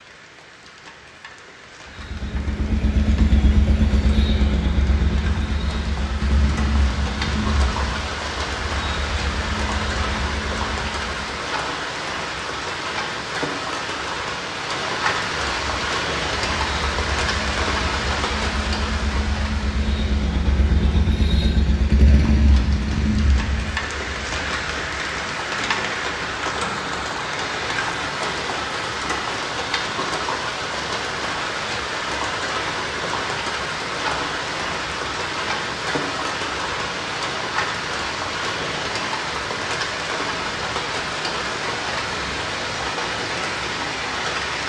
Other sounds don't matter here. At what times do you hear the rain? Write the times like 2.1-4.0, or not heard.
0.0-44.6.